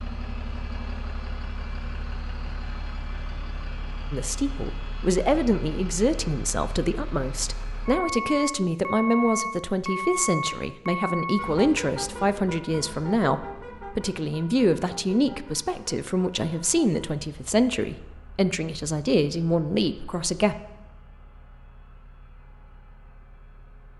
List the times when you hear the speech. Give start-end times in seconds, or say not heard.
4.1-20.6.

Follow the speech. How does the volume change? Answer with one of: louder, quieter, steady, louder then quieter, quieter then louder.
steady.